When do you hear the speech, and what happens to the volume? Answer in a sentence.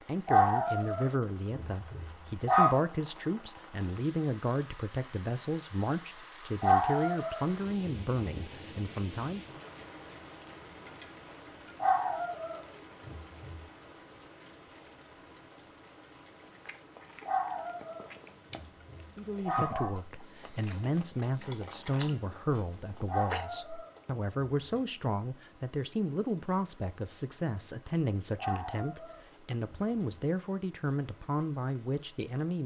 The speech can be heard from 0.1 to 9.6 s, at a steady volume; and from 19.1 to 32.6 s, at a steady volume.